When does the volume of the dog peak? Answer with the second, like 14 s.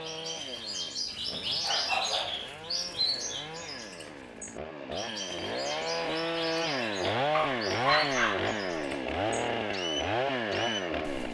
8 s.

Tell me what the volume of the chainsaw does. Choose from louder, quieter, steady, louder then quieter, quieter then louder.
louder.